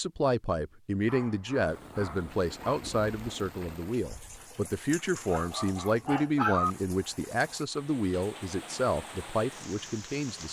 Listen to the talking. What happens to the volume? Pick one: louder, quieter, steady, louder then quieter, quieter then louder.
steady.